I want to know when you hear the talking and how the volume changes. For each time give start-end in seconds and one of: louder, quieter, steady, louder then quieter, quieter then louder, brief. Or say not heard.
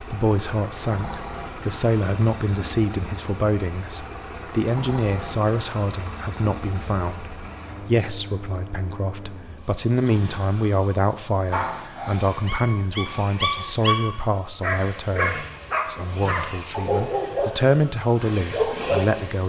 0.0-19.4 steady.